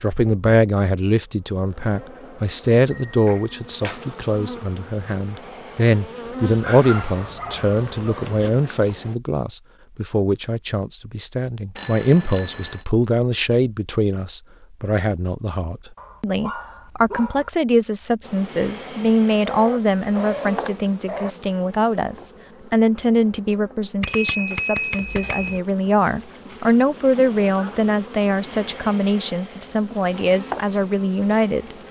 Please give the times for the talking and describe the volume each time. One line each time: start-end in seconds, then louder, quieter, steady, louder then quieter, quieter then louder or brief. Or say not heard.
0.0-31.8 steady.